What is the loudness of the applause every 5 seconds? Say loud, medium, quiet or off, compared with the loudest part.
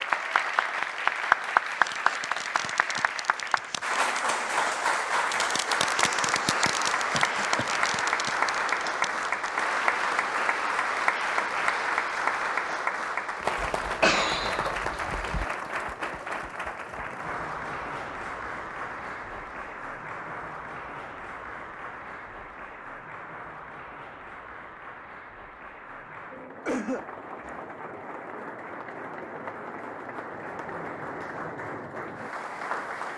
loud, loud, loud, medium, quiet, quiet, medium.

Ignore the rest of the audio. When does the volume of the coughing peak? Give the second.
14 s.